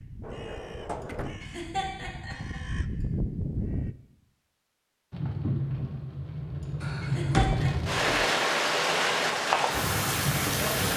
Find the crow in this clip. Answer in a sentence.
The crow can be heard from 0.0 to 4.0 s.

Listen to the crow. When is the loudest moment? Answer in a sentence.
The loudest moment of the crow is at 3 seconds.